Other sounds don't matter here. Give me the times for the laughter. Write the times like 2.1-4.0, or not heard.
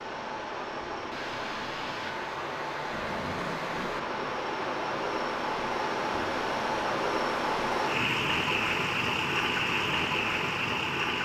not heard.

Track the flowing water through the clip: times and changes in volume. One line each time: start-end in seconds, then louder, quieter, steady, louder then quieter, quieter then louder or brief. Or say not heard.
0.0-11.2 louder.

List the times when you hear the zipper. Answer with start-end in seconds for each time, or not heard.
2.9-4.0.